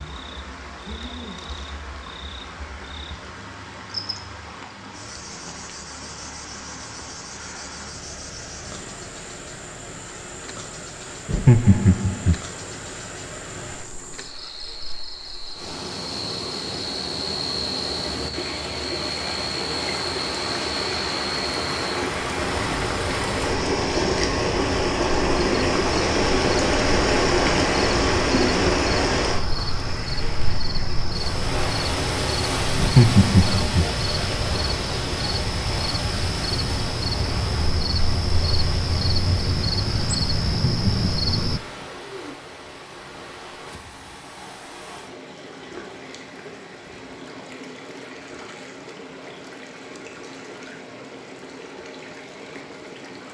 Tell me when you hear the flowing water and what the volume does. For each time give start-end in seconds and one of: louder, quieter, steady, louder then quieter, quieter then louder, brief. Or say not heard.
0.0-53.3 louder then quieter.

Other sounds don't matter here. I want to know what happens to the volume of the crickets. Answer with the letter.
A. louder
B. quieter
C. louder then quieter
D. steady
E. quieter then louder
A.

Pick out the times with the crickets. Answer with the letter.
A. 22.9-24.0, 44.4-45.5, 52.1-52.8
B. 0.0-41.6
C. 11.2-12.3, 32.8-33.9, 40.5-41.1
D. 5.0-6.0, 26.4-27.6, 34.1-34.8
B.